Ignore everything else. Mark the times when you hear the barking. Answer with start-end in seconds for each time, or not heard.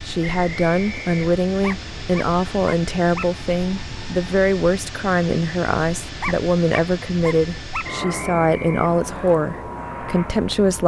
1.6-3.2, 6.2-7.8.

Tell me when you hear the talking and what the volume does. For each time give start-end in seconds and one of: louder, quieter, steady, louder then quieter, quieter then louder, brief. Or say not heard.
0.1-10.8 steady.